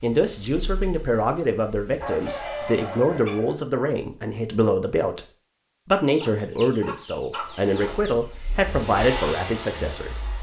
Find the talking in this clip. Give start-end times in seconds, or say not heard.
0.0-5.2, 5.8-10.2.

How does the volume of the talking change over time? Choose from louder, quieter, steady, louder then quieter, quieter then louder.
steady.